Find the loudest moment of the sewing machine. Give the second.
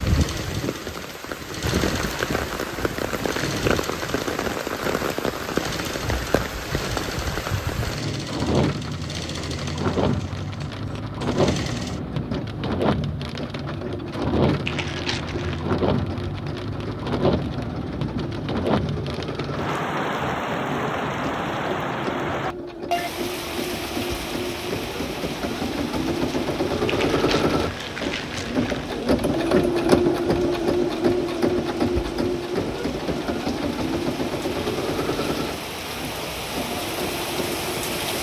30 s.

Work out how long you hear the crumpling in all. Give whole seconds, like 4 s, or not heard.
3 s.